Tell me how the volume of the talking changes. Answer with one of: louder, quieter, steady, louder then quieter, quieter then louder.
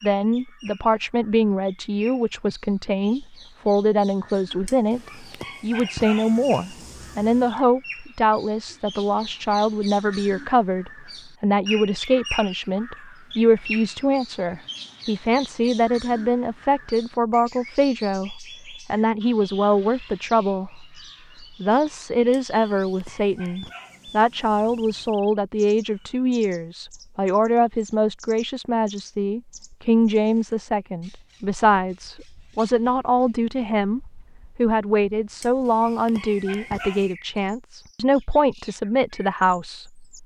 steady.